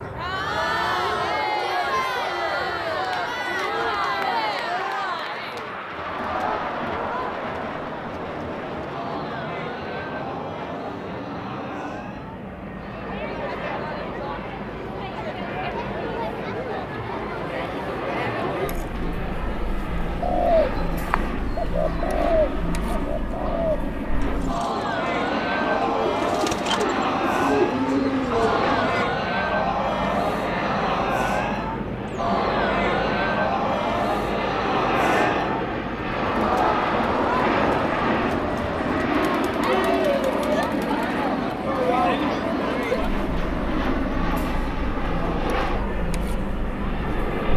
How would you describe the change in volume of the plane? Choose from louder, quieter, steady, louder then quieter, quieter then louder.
louder.